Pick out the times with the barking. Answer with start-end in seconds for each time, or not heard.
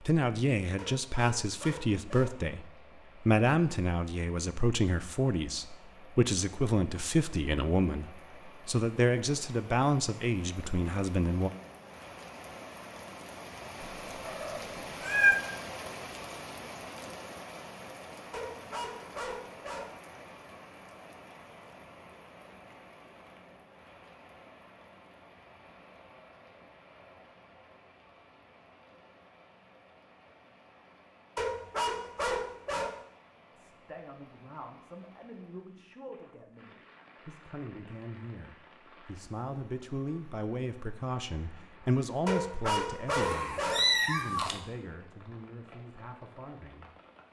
0.8-2.4, 18.3-19.9, 31.4-33.0, 42.2-43.9.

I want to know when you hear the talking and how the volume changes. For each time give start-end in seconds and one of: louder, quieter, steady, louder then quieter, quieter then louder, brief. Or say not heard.
0.0-11.5 steady
33.5-46.9 louder then quieter.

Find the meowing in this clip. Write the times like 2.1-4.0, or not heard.
14.2-15.4, 43.1-44.5.